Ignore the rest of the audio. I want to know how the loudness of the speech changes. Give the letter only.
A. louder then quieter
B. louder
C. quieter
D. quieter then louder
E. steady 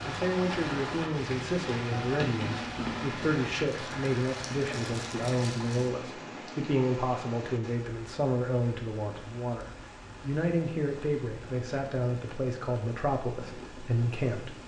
E.